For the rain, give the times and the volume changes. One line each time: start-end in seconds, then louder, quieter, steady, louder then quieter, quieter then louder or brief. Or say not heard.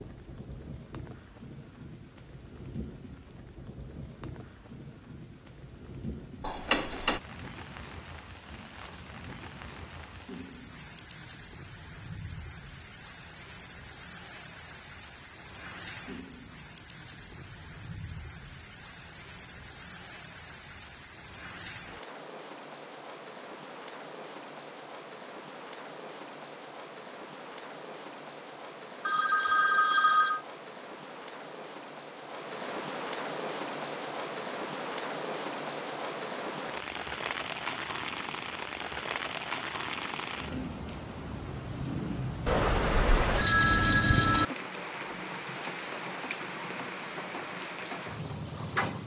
0.0-49.0 louder.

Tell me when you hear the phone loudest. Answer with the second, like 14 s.
30 s.